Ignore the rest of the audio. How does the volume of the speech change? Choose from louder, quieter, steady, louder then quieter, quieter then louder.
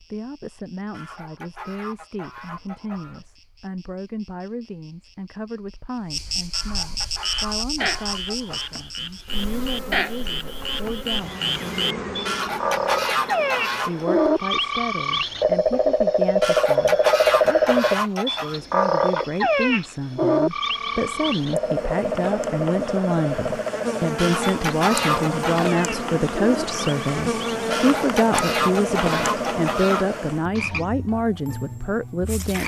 louder.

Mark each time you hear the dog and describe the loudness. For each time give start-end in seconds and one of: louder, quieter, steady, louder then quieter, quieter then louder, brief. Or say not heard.
not heard.